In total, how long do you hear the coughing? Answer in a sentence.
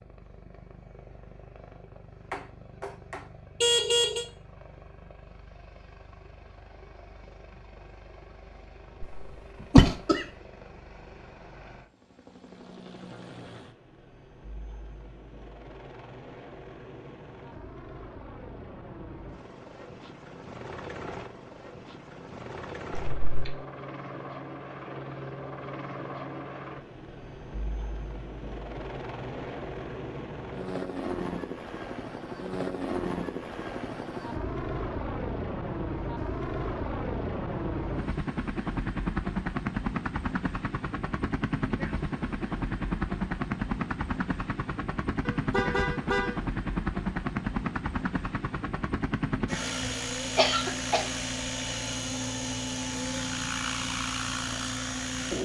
You can hear the coughing for 3 seconds altogether.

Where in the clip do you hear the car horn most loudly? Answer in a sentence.
The loudest moment of the car horn is at 4 seconds.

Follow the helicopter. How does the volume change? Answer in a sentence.
The loudness of the helicopter goes up.